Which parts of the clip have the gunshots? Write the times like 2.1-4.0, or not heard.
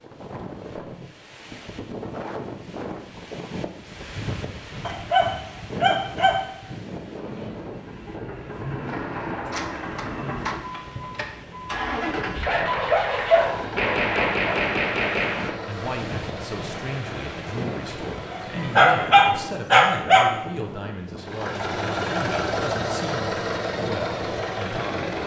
8.8-10.6, 13.8-15.6.